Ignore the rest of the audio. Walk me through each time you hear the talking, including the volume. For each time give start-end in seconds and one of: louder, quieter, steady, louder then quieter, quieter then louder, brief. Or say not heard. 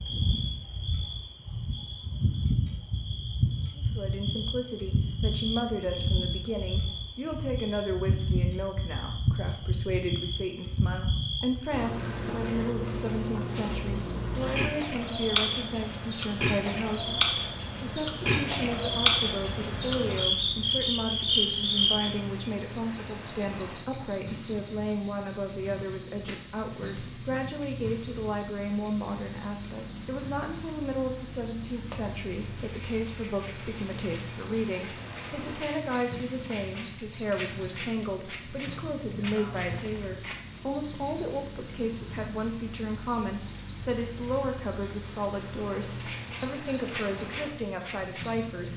3.8-48.7 steady.